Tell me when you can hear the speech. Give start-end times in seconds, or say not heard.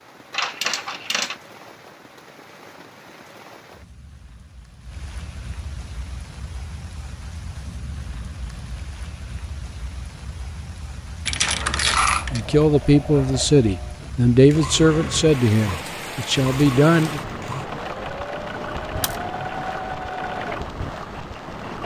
12.3-17.2.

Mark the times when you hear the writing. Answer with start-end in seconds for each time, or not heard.
not heard.